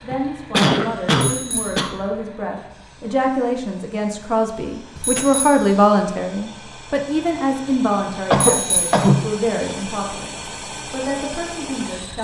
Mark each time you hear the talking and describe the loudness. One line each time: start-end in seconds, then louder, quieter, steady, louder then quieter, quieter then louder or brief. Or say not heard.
0.0-12.2 louder then quieter.